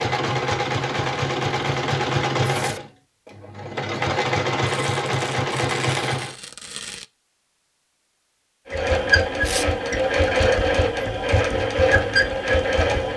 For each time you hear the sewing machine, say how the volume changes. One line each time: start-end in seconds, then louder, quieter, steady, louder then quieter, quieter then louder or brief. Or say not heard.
0.0-6.3 quieter then louder
8.7-13.1 steady.